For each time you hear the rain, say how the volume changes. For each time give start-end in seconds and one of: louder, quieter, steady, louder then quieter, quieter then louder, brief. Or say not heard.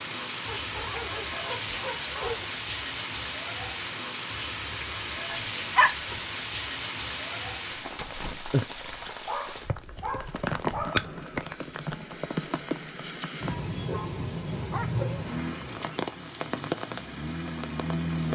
0.0-18.3 steady.